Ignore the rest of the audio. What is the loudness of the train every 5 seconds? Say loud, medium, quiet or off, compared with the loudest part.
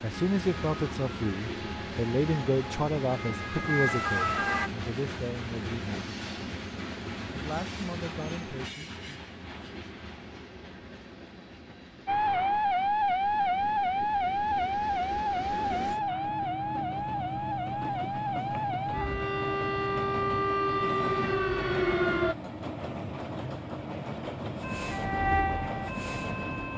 loud, loud, medium, loud, loud, loud.